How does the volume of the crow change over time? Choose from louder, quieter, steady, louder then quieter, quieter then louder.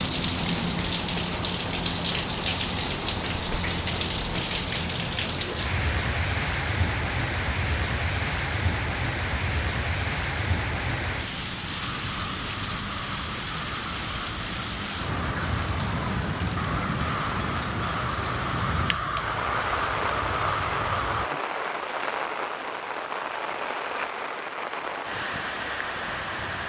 louder.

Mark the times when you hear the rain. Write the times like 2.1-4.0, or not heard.
0.0-26.6.